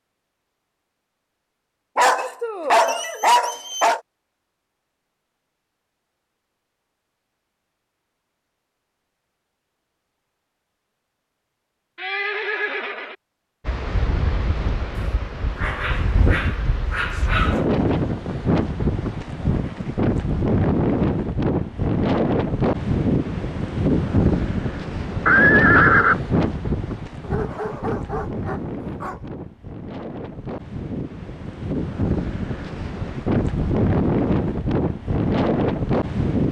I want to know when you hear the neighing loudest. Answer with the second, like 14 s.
26 s.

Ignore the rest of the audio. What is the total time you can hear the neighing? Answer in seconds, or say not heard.
2 s.